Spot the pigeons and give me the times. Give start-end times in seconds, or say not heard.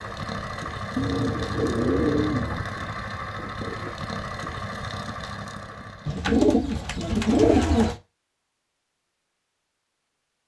0.9-2.6, 6.0-8.0.